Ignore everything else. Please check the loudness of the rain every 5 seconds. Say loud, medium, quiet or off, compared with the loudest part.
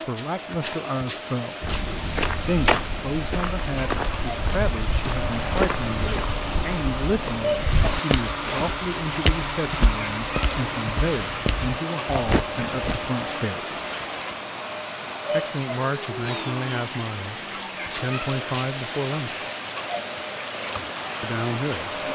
medium, loud, loud, loud, loud.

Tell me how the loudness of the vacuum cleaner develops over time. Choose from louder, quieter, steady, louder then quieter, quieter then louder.
steady.